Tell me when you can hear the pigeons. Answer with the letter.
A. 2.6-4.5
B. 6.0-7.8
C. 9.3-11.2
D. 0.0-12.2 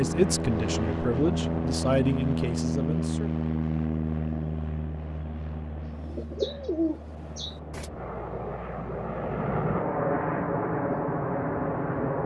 B.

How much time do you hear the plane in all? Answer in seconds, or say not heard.
12 s.